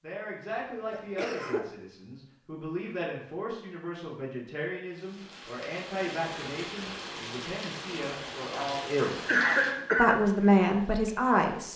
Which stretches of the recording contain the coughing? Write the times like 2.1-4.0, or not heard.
0.5-1.7, 8.6-10.2.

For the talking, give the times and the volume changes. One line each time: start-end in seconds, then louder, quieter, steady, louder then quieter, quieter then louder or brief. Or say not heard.
0.0-9.2 steady
9.9-11.7 brief.